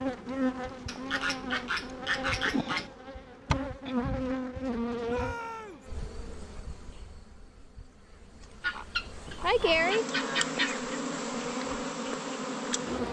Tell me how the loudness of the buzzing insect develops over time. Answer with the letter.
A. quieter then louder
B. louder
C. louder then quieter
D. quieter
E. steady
A.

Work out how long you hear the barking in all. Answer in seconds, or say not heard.
not heard.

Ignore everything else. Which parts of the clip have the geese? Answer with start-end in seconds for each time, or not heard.
0.8-2.9, 8.6-11.0.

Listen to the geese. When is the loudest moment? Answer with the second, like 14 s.
10 s.